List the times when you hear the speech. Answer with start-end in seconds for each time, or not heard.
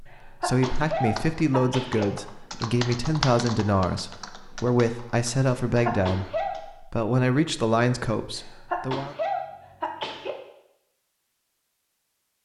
0.0-9.2.